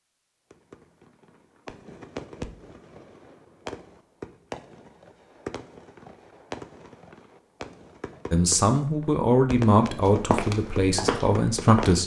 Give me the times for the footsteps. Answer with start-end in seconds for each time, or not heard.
10.1-12.0.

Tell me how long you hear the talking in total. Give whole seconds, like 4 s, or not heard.
4 s.